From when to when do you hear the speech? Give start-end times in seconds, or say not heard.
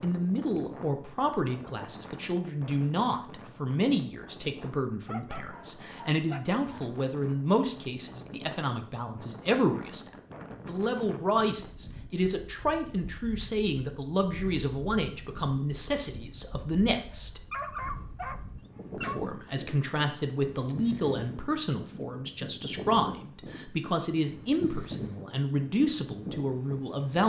0.0-10.1, 10.7-17.4, 18.9-27.2.